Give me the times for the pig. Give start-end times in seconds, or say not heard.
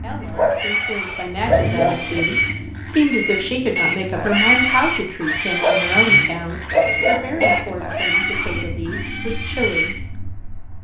0.2-10.1.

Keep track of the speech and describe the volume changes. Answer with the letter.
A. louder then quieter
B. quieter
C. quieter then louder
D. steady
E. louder
A.